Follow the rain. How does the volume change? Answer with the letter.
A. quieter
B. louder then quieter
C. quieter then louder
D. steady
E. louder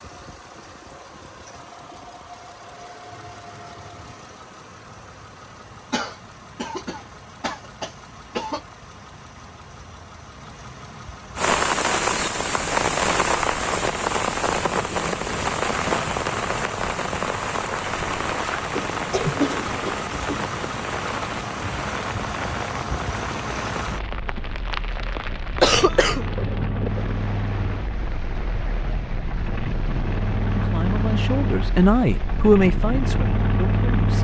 A.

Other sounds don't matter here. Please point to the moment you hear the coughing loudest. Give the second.
26 s.